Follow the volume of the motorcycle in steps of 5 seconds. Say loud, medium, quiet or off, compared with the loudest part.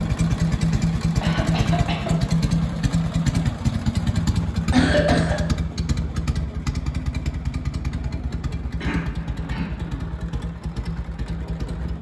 loud, medium, medium.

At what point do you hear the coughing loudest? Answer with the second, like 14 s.
5 s.